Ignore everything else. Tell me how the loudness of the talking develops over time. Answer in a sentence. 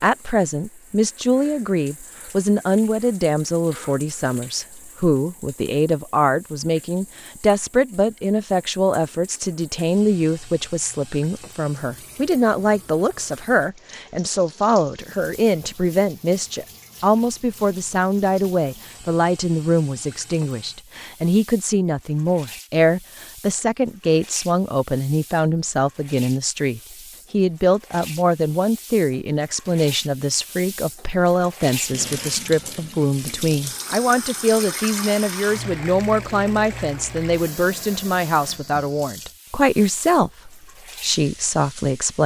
The volume of the talking stays about the same.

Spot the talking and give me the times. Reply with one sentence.
The talking can be heard from 0.0 to 42.2 s.